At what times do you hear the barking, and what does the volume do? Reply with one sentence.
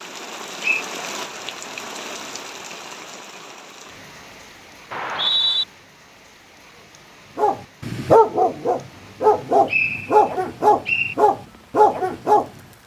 The barking can be heard from 7.3 to 12.5 s, at a steady volume.